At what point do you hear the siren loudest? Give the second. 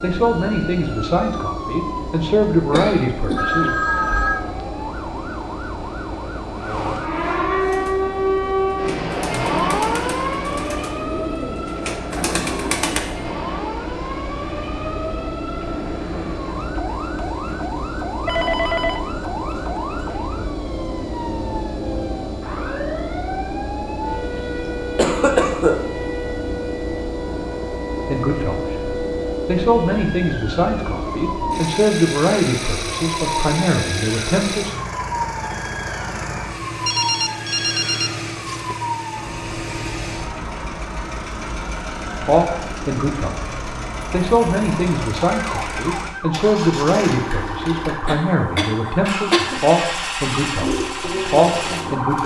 8 s.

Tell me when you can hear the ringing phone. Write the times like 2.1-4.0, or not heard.
3.4-4.5, 18.2-19.0, 36.9-38.8.